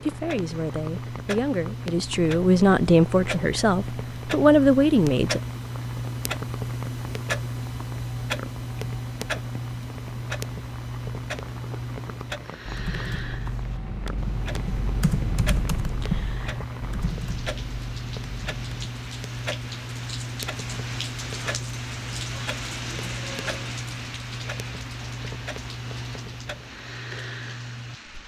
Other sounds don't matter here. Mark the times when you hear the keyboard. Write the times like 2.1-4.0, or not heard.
12.7-18.9.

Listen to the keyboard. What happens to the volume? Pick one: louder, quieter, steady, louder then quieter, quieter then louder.
louder then quieter.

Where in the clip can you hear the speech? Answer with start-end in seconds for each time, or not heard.
0.0-5.4.